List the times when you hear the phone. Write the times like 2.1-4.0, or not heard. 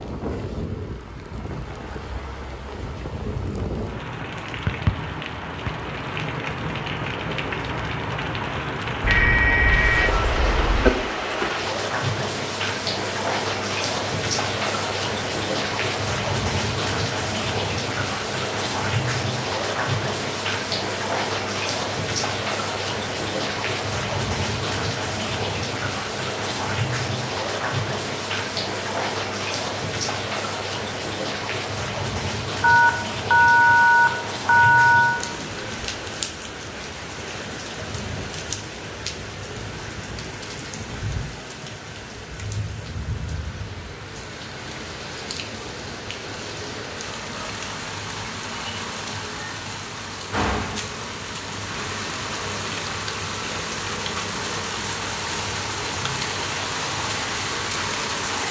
9.0-10.9, 32.6-35.2.